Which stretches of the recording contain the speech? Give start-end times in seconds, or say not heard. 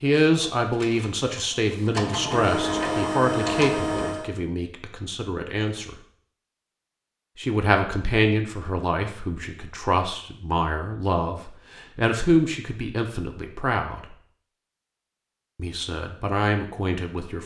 0.0-6.0, 7.3-14.2, 15.6-17.4.